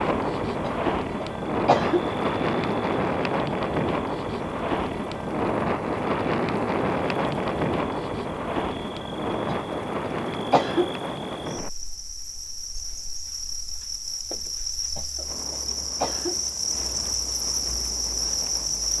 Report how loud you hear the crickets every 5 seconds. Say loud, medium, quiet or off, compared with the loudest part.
quiet, quiet, medium, loud.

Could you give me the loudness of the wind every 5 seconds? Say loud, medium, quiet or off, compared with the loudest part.
loud, loud, medium, quiet.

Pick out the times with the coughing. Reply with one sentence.
The coughing can be heard from 0.6 to 2.0 s, from 9.4 to 10.9 s and from 14.9 to 16.4 s.